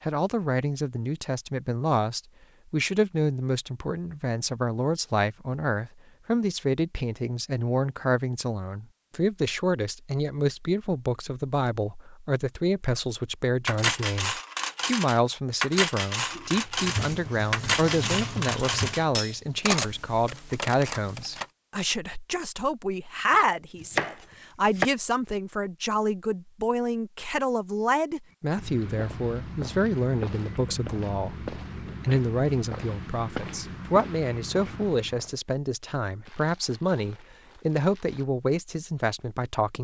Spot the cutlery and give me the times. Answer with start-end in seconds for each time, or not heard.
13.7-21.4.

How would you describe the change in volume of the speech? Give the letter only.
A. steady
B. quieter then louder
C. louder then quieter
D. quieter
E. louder
A.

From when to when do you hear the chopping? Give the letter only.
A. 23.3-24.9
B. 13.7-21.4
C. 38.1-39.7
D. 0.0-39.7
A.